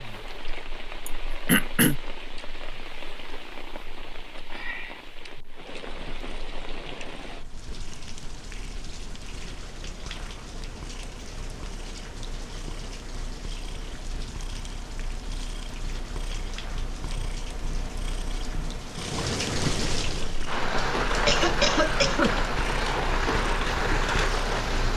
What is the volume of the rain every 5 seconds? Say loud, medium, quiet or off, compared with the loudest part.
quiet, quiet, quiet, medium, loud.